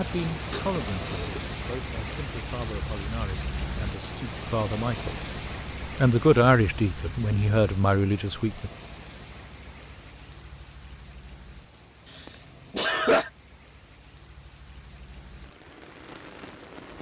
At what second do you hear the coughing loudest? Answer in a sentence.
The volume of the coughing peaks at 13 seconds.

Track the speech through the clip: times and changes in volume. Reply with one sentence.
You can hear the speech from 0.0 to 5.2 s, getting quieter then louder; and briefly from 6.0 to 8.7 s.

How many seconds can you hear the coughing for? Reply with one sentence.
You can hear the coughing for 2 seconds altogether.